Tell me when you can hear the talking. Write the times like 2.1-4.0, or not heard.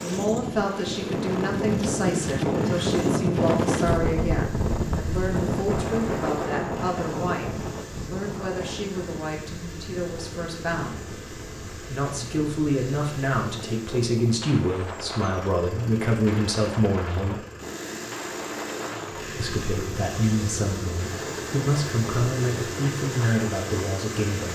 0.0-11.1, 11.9-17.4, 19.4-24.4.